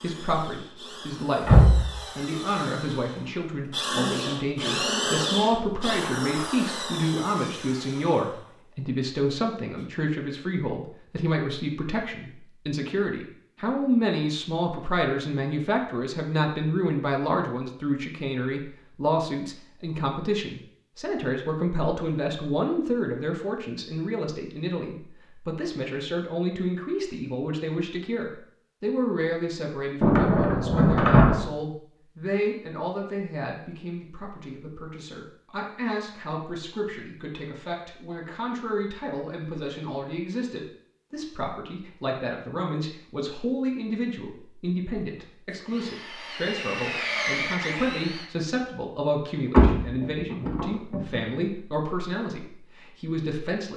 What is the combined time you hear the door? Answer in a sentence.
You can hear the door for 4 seconds altogether.